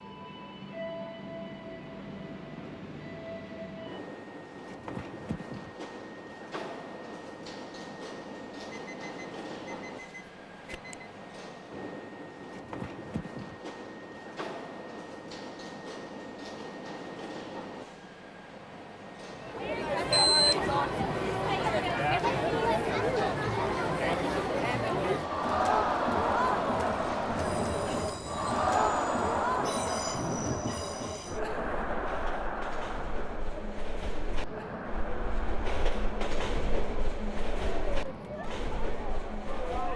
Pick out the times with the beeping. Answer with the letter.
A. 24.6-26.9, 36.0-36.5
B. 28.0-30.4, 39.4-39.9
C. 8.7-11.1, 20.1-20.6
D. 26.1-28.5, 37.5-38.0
C.